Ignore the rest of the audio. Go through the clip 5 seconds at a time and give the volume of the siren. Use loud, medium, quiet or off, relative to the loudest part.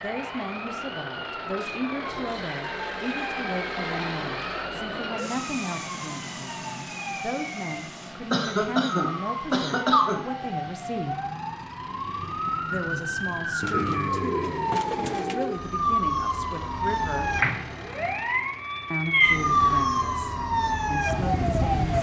quiet, medium, medium, loud, loud.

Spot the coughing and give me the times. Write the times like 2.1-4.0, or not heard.
8.3-10.2.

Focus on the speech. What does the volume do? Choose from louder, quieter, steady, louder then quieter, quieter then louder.
steady.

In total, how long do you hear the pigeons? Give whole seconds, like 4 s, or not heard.
2 s.